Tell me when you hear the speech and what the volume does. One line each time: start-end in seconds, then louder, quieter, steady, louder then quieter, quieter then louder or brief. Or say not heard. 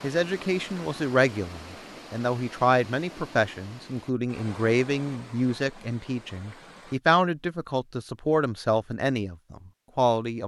0.0-10.4 steady.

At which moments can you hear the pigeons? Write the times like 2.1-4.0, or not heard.
not heard.